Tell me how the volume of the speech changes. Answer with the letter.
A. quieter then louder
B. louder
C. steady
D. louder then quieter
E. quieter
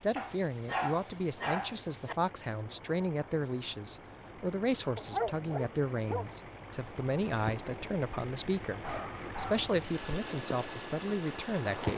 C.